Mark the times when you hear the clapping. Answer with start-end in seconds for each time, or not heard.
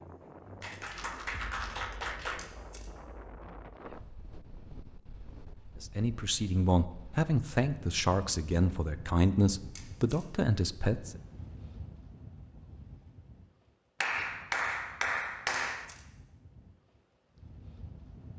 0.6-2.5, 14.0-15.8.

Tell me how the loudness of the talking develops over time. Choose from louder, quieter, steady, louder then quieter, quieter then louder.
steady.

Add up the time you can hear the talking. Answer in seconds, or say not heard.
5 s.